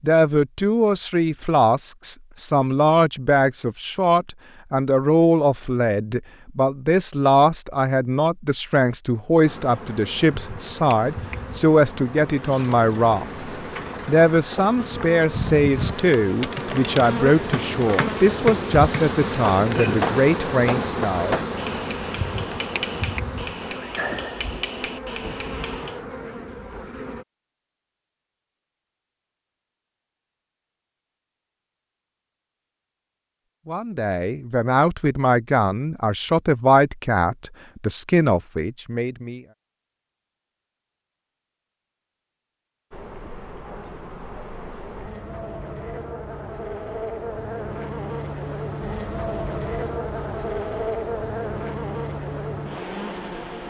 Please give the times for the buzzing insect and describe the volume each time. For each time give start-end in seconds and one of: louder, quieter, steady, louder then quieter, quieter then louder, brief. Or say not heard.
9.4-27.2 louder then quieter
42.9-53.6 louder.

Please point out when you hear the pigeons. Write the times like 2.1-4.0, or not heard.
not heard.